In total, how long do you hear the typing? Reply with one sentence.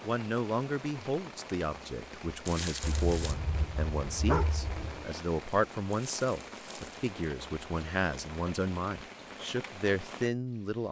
You can't hear the typing here.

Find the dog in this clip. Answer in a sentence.
You can hear the dog from 2.8 to 5.0 s.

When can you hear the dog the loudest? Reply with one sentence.
The volume of the dog peaks at 4 seconds.